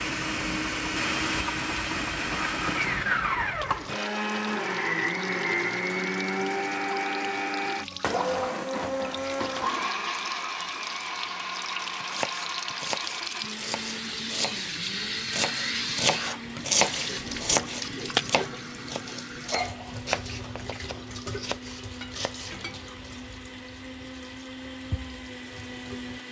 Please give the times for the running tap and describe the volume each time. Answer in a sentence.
The running tap can be heard from 0.0 to 26.2 s, getting louder then quieter.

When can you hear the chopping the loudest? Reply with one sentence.
The volume of the chopping peaks at 17 seconds.